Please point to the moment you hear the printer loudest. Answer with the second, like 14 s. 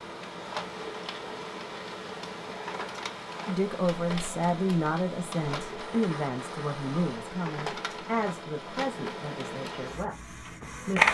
11 s.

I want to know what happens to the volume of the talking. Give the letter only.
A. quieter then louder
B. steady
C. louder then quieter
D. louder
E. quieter
E.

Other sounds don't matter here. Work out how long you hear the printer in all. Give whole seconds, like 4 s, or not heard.
11 s.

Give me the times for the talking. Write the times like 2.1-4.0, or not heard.
3.5-11.1.